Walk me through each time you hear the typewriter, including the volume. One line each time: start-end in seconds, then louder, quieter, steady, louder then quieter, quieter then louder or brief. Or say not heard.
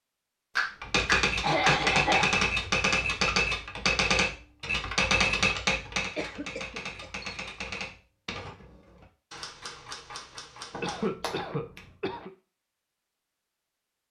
0.8-11.1 quieter.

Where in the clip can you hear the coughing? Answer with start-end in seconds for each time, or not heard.
1.4-2.4, 6.0-7.1, 10.8-12.3.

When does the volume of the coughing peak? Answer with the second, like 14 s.
2 s.